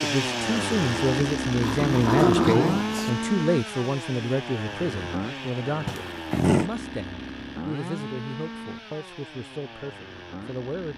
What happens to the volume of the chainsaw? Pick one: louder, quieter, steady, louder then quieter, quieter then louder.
quieter.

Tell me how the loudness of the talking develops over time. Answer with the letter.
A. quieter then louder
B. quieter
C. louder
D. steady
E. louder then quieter
B.